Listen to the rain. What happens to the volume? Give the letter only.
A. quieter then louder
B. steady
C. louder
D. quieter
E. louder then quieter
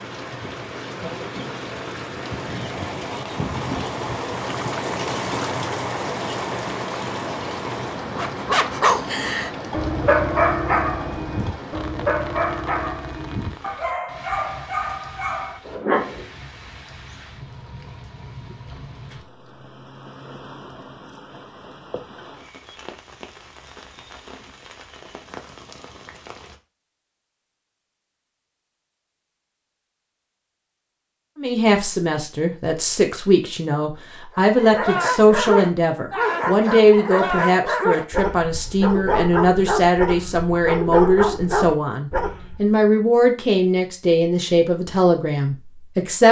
D.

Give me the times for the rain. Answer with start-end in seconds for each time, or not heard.
0.0-26.6.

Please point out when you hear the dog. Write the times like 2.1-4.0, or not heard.
8.2-16.2, 34.4-42.6.